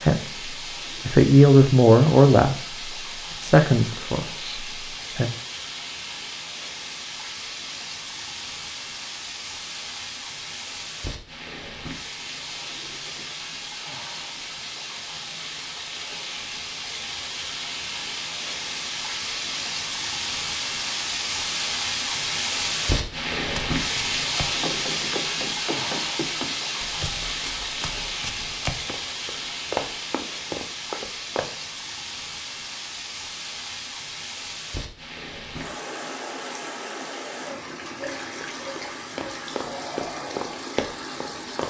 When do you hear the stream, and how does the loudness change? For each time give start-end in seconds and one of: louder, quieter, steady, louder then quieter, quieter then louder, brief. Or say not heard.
0.0-41.6 louder then quieter.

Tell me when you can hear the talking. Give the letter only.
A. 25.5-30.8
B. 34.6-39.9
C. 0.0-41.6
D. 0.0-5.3
D.